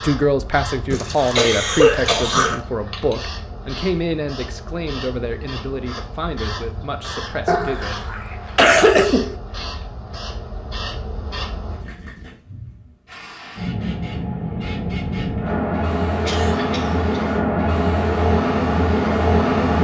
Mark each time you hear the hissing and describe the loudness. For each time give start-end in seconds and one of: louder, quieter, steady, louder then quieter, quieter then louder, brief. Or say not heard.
0.0-19.7 louder.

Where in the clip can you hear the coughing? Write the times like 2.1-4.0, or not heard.
0.9-2.6, 7.5-9.3, 16.2-17.1.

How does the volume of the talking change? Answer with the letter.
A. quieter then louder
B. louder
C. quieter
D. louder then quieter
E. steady
C.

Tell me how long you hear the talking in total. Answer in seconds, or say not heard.
8 s.